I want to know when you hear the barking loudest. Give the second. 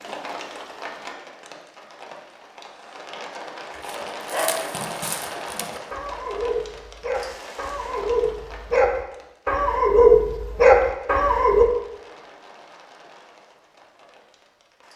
10 s.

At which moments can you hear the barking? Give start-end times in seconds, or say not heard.
3.8-11.7.